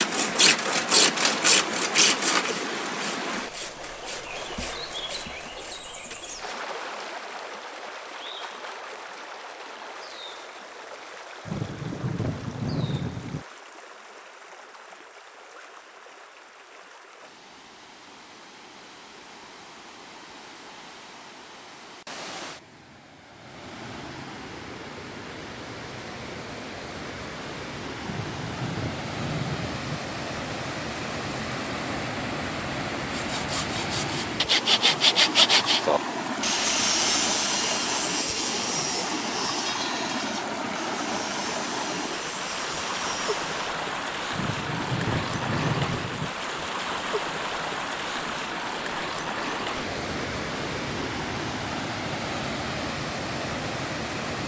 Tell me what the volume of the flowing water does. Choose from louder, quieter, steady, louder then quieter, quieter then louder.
quieter then louder.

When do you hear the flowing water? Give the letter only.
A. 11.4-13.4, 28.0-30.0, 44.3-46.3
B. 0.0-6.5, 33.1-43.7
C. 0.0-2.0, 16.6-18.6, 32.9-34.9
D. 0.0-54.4
D.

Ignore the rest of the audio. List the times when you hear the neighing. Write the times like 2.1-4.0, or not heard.
not heard.